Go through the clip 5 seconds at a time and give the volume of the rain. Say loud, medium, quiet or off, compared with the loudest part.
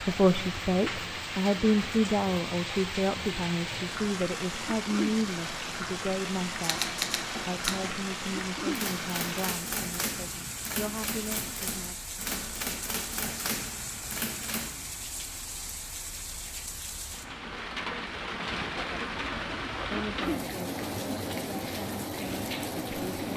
loud, loud, medium, loud, loud.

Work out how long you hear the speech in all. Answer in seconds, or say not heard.
17 s.